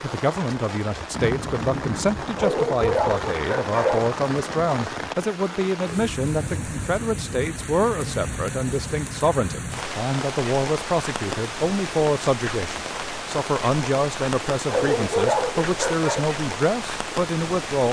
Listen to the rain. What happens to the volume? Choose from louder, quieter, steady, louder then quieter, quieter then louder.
steady.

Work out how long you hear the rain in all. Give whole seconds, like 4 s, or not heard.
18 s.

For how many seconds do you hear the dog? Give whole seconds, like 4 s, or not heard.
3 s.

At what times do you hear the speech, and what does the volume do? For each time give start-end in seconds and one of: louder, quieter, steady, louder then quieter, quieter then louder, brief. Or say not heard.
0.0-17.8 steady.